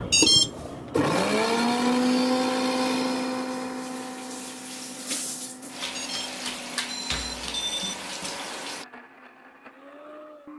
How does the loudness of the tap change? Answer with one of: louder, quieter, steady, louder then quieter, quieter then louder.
louder.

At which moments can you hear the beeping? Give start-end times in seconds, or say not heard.
0.1-0.5, 6.0-8.0.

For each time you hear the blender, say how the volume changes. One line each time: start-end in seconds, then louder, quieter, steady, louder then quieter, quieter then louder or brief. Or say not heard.
0.0-10.5 quieter.